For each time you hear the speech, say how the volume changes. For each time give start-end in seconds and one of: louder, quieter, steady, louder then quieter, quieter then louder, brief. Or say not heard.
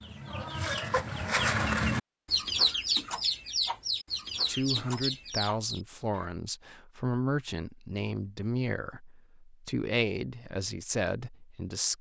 4.5-11.9 steady.